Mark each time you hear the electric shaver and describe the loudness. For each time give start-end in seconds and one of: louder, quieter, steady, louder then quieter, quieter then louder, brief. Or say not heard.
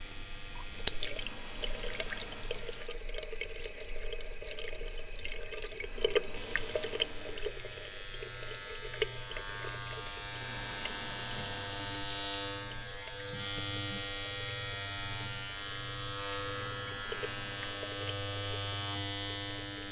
0.0-2.9 brief
6.3-19.8 louder.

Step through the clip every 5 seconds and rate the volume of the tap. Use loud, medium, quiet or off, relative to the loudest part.
loud, loud, quiet, quiet.